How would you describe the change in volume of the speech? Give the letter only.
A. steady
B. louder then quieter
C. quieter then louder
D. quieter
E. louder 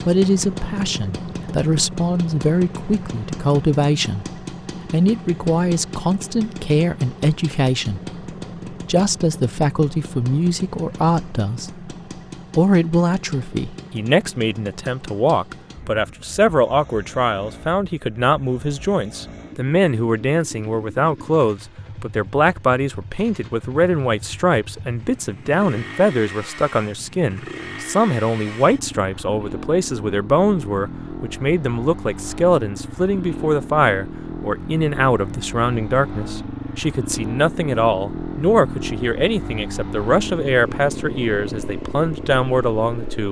A.